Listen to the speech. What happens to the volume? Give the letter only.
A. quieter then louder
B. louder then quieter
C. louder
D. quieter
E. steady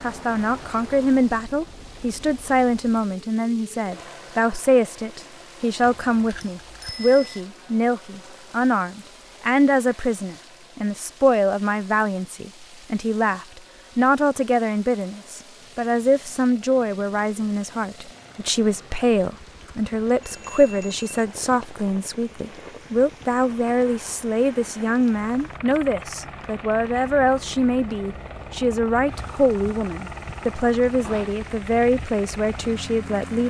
E.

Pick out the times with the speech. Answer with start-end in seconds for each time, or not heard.
0.0-33.4.